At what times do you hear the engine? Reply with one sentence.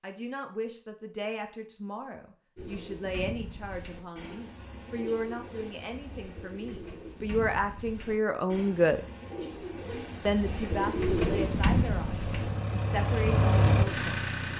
You can hear the engine from 11.2 to 14.5 s.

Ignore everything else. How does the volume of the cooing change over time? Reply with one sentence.
The loudness of the cooing goes up.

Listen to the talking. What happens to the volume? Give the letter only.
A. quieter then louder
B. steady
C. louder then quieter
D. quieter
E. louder
C.